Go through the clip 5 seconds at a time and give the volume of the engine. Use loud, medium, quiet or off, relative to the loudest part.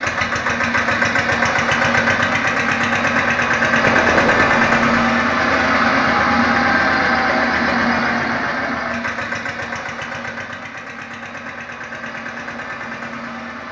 loud, loud, quiet.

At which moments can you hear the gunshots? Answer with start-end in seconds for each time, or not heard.
3.8-5.0.